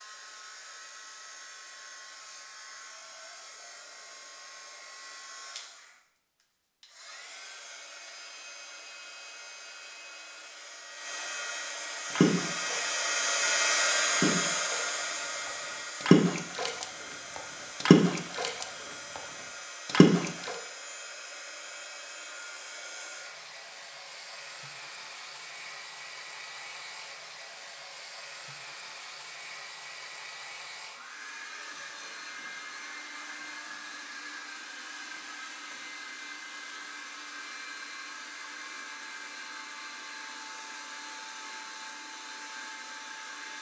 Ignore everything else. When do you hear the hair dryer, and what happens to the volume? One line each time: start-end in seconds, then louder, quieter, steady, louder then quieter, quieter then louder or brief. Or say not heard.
0.0-43.5 louder then quieter.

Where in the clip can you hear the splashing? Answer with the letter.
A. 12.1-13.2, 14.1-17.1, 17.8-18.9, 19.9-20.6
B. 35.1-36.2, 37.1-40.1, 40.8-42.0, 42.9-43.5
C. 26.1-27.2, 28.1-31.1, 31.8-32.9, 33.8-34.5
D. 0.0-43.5
A.